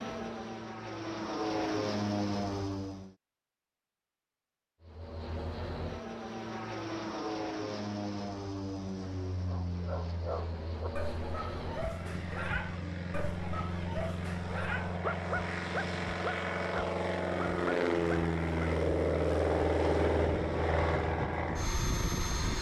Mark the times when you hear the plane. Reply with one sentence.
The plane can be heard from 0.0 to 3.1 s and from 4.8 to 22.5 s.